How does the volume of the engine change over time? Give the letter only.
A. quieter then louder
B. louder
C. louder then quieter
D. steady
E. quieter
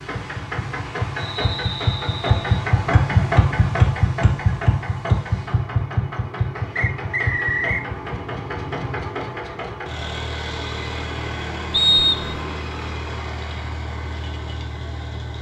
E.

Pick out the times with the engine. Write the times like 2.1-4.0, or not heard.
0.0-15.3.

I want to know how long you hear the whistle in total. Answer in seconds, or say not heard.
3 s.